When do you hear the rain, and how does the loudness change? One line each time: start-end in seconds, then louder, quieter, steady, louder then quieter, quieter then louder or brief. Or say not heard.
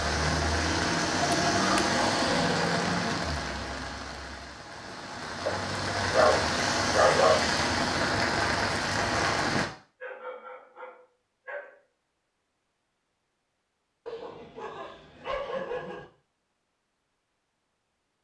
0.0-9.7 quieter then louder.